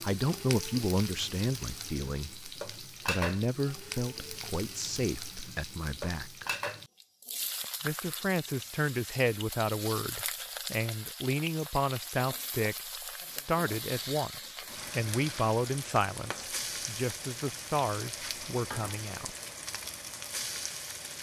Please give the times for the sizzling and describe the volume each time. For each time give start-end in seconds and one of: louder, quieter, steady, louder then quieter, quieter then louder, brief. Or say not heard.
0.0-21.1 steady.